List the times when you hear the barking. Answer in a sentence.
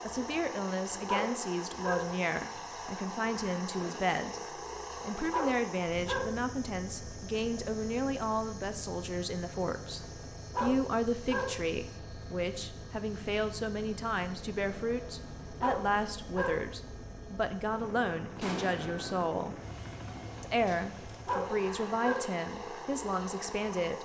You can hear the barking from 1.1 to 2.2 s, from 5.3 to 6.4 s, from 10.6 to 11.7 s, from 15.6 to 16.7 s and from 21.2 to 22.4 s.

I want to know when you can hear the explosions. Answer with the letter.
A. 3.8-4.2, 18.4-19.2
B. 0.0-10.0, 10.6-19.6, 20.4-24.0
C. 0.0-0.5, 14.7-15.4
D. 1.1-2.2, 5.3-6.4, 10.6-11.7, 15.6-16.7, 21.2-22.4
A.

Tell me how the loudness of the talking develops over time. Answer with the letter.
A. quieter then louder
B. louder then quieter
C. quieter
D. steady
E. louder
D.